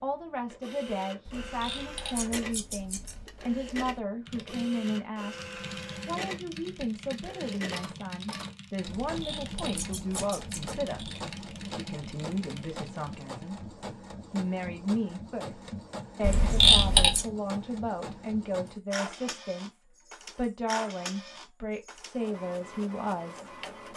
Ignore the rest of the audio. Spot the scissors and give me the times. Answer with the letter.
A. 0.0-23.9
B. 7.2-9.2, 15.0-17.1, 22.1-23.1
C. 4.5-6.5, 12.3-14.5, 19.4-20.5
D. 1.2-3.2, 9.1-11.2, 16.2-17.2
D.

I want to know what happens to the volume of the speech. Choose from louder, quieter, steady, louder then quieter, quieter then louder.
steady.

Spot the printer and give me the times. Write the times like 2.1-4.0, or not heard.
0.0-23.9.